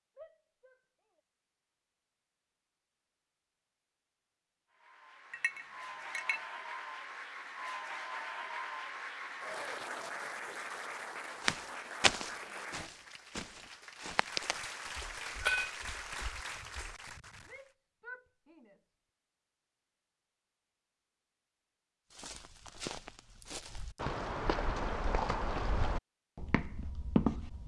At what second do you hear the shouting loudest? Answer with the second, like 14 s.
18 s.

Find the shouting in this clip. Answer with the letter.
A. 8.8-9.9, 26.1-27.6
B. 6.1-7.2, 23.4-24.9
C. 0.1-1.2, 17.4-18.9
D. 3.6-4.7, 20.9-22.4
C.